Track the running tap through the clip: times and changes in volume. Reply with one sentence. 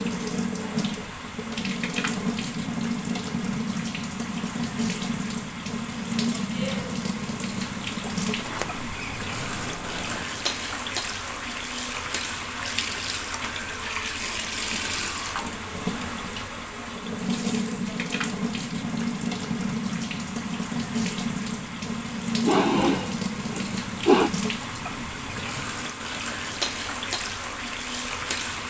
The running tap can be heard from 0.0 to 28.6 s, at a steady volume.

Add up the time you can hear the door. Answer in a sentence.
You can hear the door for 2 seconds altogether.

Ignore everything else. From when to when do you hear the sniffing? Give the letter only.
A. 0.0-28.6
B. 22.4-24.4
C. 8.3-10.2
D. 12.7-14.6
B.